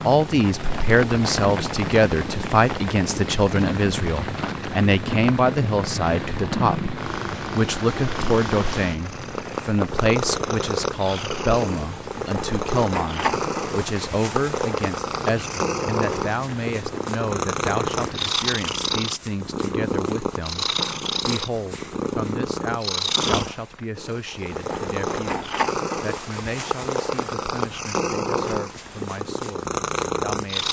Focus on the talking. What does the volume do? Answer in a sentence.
The loudness of the talking goes down.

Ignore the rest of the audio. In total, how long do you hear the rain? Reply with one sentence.
The rain can be heard for 18 seconds in total.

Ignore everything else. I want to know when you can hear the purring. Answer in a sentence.
You can hear the purring from 2.2 to 30.6 s.